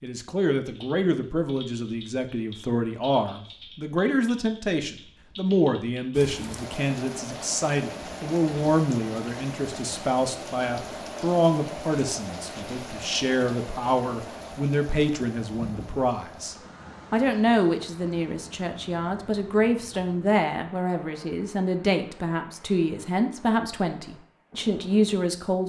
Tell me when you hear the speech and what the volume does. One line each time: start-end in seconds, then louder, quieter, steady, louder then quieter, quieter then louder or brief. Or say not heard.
0.0-25.6 steady.